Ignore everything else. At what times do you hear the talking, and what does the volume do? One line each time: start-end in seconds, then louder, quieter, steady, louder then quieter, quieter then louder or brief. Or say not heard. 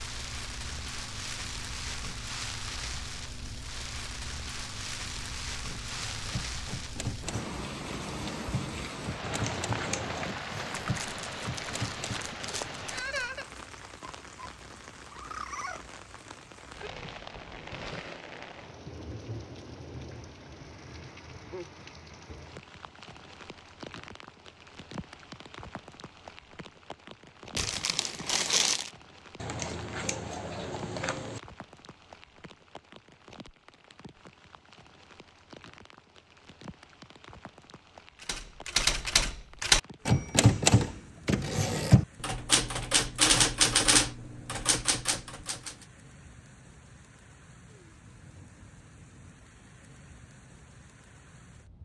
not heard.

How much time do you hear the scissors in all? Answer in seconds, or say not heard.
3 s.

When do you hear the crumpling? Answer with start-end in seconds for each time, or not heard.
10.8-13.3, 27.6-28.9.